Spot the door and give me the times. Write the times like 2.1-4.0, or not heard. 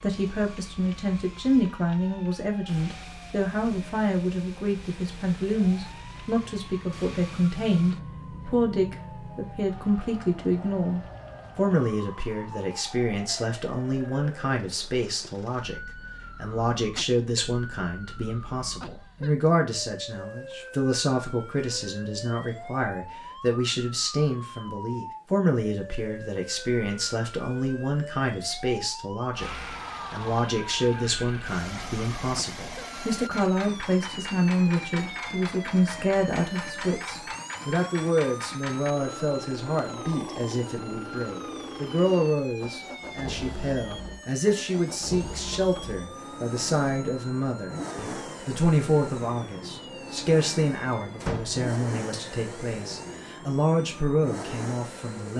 51.2-51.6.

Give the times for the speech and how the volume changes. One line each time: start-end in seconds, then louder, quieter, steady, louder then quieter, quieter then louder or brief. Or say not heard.
0.0-55.3 steady.